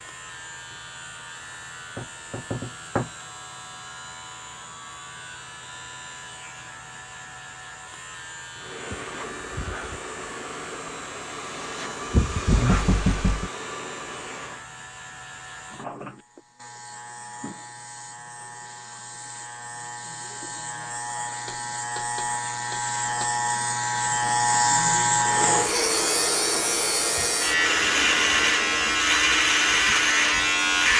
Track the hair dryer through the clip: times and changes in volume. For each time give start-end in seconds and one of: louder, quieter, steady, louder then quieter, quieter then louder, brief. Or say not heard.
8.6-14.7 louder then quieter
25.2-30.9 quieter.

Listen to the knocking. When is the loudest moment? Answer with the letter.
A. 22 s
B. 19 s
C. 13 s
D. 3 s
C.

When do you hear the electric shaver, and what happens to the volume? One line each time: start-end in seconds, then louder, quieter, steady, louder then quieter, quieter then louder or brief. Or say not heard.
0.0-30.9 louder.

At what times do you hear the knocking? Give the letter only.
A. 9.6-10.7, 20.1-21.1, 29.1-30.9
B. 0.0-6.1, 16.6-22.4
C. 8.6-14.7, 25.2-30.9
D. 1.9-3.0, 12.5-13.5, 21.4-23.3
D.